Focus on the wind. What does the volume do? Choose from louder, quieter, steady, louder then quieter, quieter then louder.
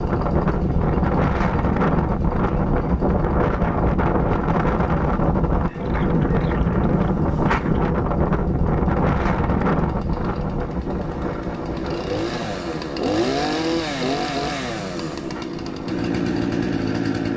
quieter.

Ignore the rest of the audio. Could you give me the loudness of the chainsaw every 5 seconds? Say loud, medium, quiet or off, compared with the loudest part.
quiet, quiet, loud, loud.